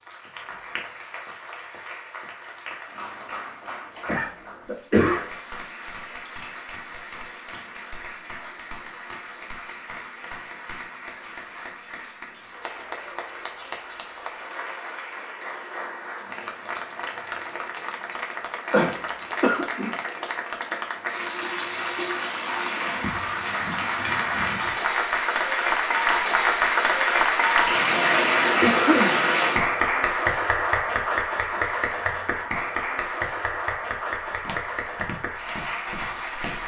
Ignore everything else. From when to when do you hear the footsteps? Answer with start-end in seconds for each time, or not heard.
34.2-36.6.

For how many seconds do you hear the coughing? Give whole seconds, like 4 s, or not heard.
3 s.